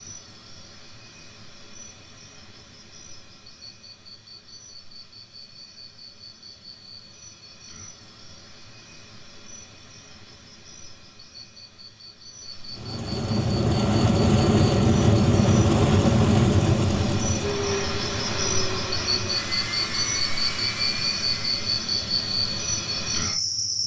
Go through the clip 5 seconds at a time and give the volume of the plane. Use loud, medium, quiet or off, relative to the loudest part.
off, off, loud, loud, quiet.